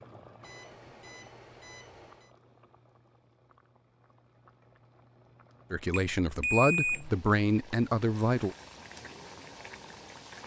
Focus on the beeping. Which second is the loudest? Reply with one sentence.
The volume of the beeping peaks at 7 seconds.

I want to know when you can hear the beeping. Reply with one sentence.
The beeping can be heard from 0.4 to 2.3 s and from 5.9 to 7.0 s.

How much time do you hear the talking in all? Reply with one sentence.
You can hear the talking for 3 seconds altogether.